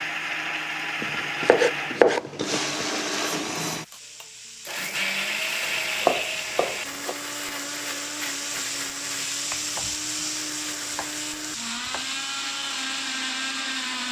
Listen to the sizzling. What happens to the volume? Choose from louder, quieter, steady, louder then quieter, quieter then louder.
louder then quieter.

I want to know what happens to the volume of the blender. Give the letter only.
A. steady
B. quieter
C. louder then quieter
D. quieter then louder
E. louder
D.